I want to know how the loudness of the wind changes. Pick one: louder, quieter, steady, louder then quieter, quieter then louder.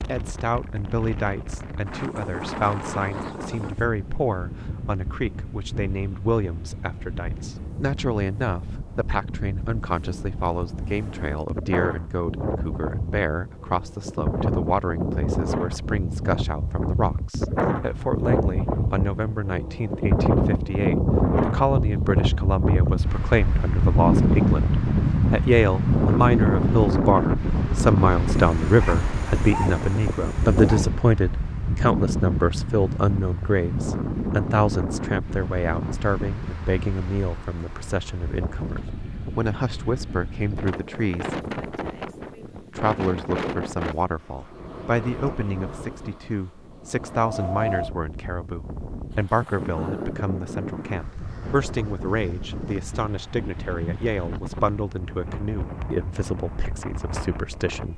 louder then quieter.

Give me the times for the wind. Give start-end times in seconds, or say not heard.
0.0-57.9.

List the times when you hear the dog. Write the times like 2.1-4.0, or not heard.
28.2-30.9.